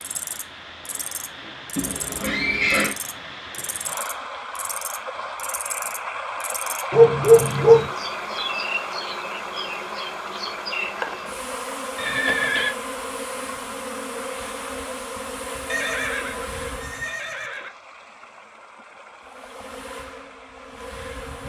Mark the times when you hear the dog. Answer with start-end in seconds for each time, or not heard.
6.9-7.9.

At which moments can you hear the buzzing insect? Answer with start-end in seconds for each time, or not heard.
0.0-17.2, 19.2-21.4.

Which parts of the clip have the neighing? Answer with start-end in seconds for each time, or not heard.
1.8-3.0, 11.9-12.8, 15.7-17.7.